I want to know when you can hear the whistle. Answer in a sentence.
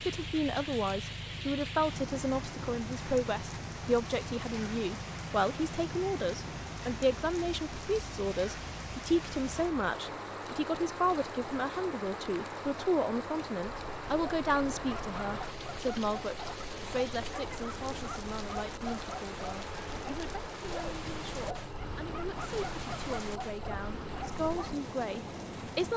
The whistle can't be heard in this clip.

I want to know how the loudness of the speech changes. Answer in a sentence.
The loudness of the speech goes down.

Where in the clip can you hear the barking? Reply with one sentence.
The barking can be heard from 13.8 to 24.8 s.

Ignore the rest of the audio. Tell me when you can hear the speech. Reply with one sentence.
The speech can be heard from 0.1 to 25.9 s.